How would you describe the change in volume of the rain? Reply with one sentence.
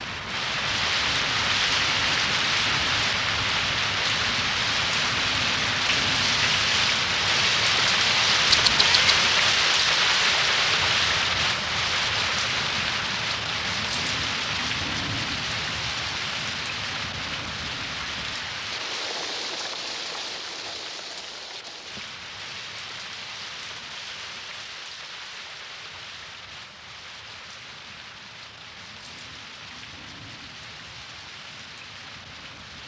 The loudness of the rain goes down.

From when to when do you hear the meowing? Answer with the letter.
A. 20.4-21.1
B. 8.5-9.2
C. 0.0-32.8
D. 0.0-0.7
B.